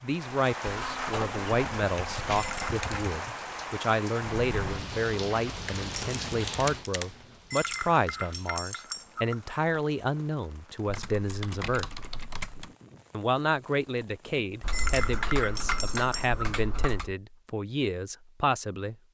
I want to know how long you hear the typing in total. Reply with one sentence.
You can hear the typing for 8 seconds altogether.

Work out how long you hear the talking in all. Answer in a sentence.
You can hear the talking for 18 seconds altogether.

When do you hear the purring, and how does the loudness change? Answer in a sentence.
You can't hear the purring here.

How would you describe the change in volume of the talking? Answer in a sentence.
The volume of the talking stays about the same.